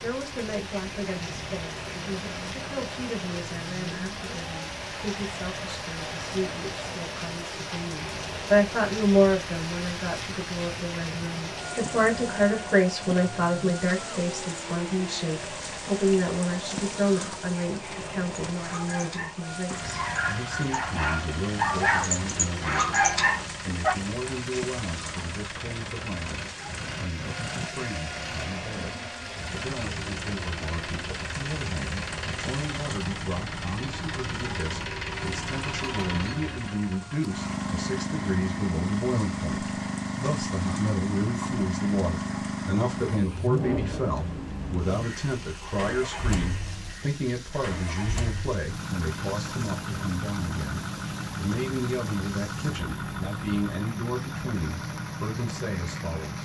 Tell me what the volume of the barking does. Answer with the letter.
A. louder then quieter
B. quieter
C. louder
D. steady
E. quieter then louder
C.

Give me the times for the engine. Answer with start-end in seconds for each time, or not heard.
0.0-56.3.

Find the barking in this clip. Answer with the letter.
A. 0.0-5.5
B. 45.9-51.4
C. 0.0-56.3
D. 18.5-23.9
D.